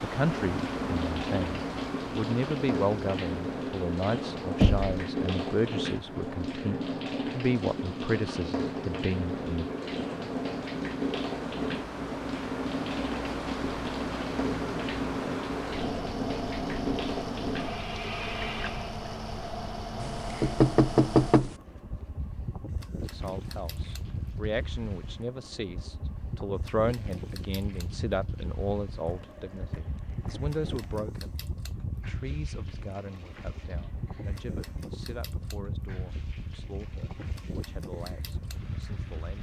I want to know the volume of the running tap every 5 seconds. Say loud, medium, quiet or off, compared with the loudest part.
loud, loud, loud, loud, quiet, quiet, quiet, quiet.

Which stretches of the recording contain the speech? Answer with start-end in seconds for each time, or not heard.
0.0-9.7, 23.1-39.3.